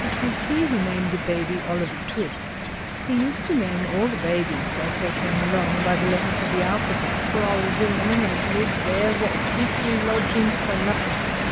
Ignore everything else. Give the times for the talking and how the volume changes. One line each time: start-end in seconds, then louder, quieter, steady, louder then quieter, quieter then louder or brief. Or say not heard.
0.0-11.2 steady.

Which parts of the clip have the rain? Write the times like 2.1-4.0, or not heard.
0.0-11.4.